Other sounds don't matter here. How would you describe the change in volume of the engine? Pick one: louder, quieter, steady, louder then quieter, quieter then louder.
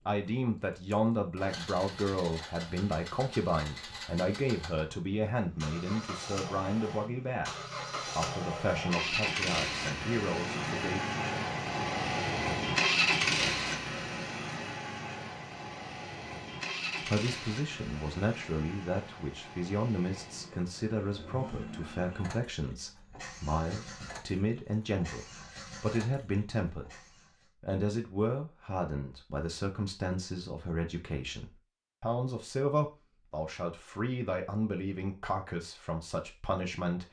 louder then quieter.